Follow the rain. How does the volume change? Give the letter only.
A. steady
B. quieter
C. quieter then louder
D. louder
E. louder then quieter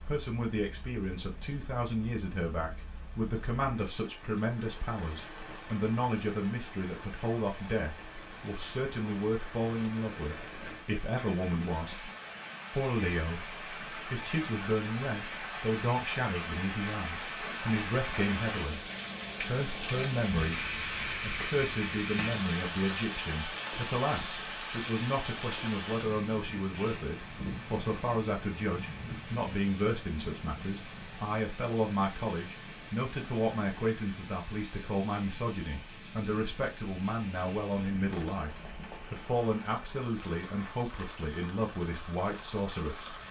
E.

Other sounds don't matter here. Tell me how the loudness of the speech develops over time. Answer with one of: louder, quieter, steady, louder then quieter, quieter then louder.
steady.